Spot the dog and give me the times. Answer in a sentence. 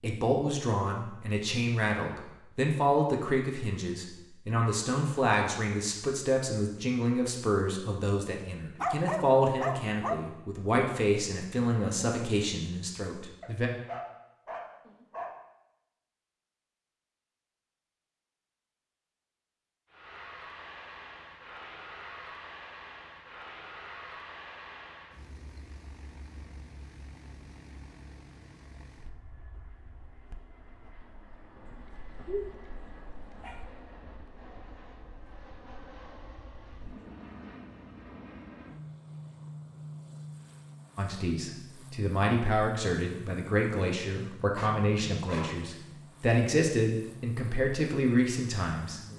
You can hear the dog from 8.8 to 10.2 s, from 13.4 to 15.3 s, from 31.6 to 33.6 s and from 44.5 to 45.6 s.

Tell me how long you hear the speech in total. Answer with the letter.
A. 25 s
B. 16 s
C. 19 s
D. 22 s
D.